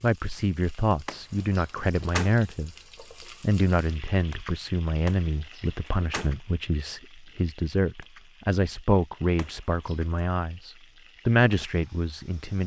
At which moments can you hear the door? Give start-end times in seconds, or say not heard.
1.1-2.4, 5.0-6.3, 9.3-10.1.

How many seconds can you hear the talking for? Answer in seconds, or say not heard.
12 s.